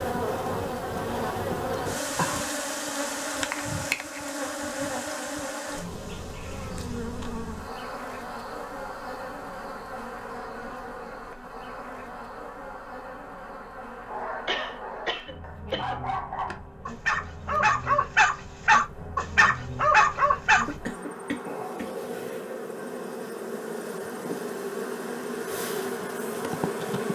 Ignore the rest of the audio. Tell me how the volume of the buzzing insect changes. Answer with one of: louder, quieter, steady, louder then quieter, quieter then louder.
quieter then louder.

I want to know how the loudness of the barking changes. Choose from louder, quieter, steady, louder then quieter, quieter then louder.
louder.